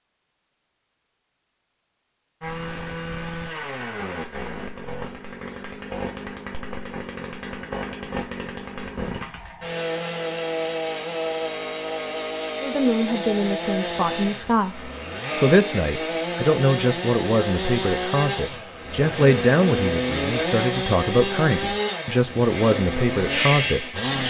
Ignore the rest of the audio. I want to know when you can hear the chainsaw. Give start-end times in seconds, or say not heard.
2.4-24.2.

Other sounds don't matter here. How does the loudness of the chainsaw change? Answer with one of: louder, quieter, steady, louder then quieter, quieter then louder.
louder.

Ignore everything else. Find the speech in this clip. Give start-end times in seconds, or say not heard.
12.6-24.2.